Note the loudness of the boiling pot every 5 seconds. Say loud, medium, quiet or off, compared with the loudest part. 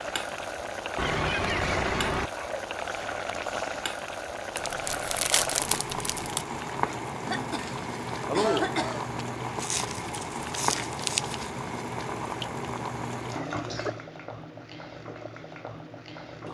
loud, loud, loud, medium.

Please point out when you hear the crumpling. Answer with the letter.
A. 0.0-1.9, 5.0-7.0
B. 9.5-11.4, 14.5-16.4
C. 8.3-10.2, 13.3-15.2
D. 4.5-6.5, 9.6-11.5
D.